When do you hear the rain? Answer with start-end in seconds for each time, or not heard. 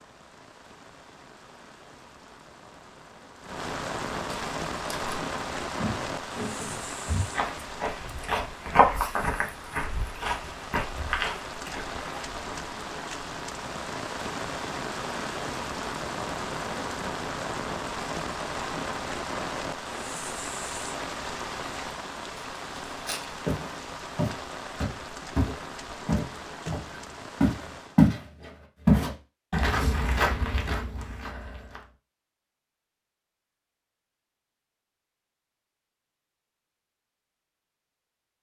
0.0-28.1.